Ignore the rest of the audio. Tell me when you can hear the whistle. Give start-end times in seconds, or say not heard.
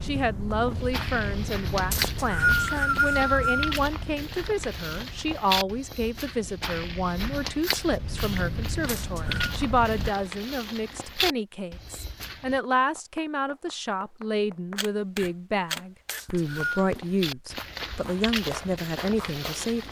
1.9-3.8, 8.8-9.6, 16.1-16.9.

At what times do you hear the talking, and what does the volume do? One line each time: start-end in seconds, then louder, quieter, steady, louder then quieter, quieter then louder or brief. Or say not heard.
0.0-19.8 steady.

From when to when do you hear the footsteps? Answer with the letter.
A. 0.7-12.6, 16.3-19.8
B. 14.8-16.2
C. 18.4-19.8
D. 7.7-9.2
A.